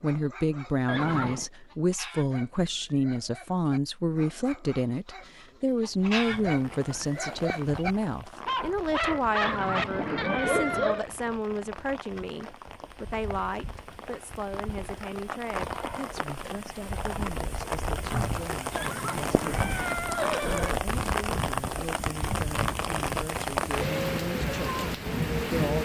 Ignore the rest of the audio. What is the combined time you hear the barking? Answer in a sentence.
You can hear the barking for 11 seconds altogether.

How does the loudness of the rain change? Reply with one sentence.
The loudness of the rain goes up.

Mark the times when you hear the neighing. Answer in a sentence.
The neighing can be heard from 0.8 to 1.5 s, from 9.4 to 11.1 s and from 18.8 to 20.8 s.